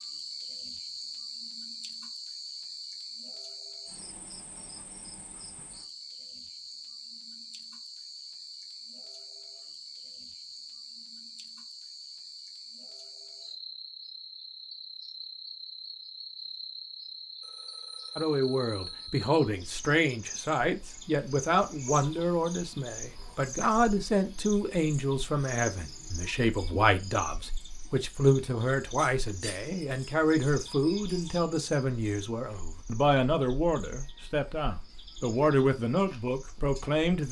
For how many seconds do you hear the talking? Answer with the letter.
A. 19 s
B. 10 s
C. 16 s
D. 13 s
A.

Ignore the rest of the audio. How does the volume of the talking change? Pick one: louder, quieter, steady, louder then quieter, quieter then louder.
steady.